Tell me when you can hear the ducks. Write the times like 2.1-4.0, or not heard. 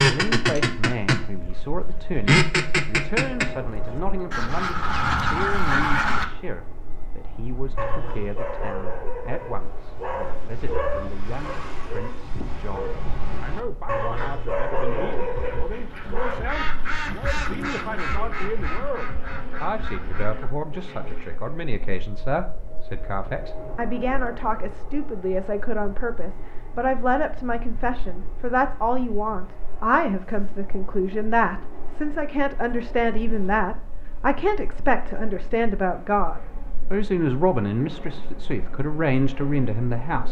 0.0-6.2, 14.2-21.4.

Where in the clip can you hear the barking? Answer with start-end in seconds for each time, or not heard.
7.8-16.6.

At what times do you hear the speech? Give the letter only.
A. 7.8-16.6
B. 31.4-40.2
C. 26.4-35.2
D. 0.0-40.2
D.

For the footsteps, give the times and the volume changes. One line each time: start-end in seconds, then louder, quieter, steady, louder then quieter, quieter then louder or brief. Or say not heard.
not heard.